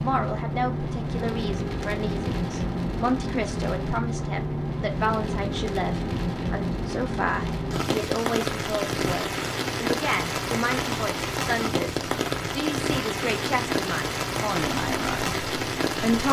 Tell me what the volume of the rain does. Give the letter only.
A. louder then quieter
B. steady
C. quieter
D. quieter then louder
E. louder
B.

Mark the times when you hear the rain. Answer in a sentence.
You can hear the rain from 0.0 to 16.2 s.